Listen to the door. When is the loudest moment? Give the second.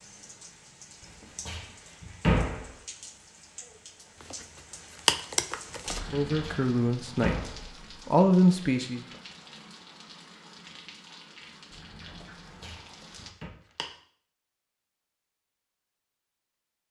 2 s.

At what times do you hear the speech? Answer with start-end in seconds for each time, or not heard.
6.1-9.1.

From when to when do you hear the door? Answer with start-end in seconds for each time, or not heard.
1.4-2.7, 6.4-7.7, 12.4-13.5.